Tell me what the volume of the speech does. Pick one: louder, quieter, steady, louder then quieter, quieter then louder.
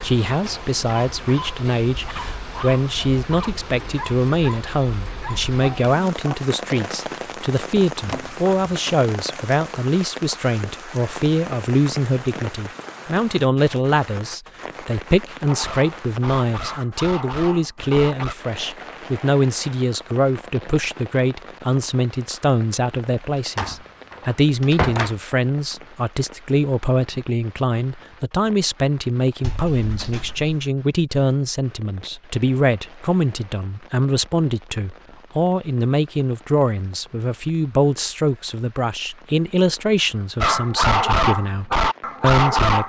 steady.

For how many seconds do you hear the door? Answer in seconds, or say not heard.
4 s.